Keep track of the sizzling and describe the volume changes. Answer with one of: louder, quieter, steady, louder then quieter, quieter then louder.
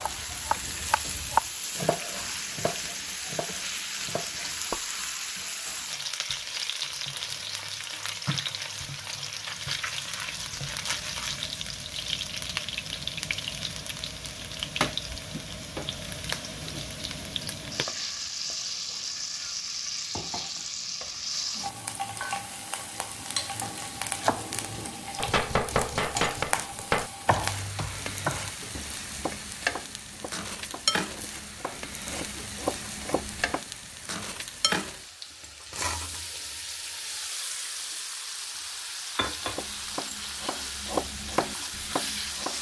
steady.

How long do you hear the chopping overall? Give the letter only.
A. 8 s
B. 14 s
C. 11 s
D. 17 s
D.